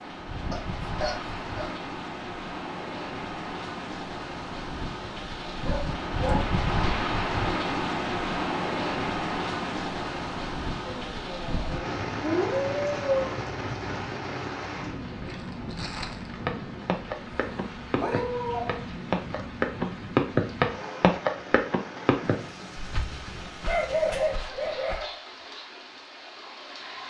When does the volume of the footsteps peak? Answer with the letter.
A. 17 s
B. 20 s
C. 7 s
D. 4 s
B.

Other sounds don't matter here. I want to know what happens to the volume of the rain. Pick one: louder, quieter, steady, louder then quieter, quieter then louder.
louder then quieter.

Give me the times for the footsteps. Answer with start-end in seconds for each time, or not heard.
15.2-25.0.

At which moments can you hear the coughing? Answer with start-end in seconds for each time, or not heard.
not heard.